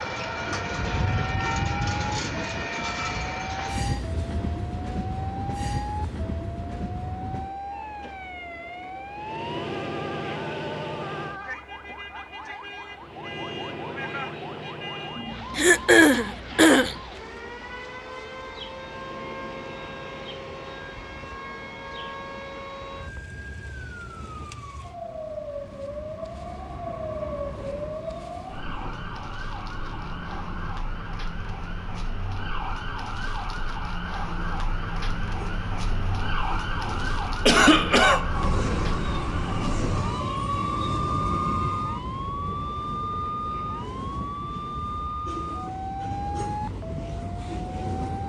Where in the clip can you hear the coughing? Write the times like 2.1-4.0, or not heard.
15.6-16.9, 37.5-38.3.